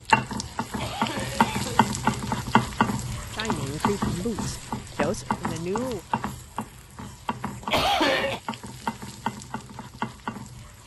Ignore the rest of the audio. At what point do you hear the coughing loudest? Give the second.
8 s.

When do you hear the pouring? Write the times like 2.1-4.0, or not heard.
not heard.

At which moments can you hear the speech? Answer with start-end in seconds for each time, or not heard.
3.3-6.0.